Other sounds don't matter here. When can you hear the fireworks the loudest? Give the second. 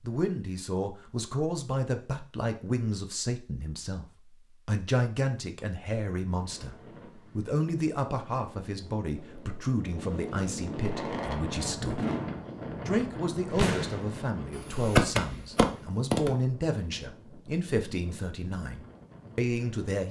15 s.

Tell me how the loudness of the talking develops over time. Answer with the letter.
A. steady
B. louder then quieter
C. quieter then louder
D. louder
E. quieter
A.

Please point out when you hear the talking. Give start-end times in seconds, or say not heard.
0.0-4.0, 4.7-12.1, 12.8-20.0.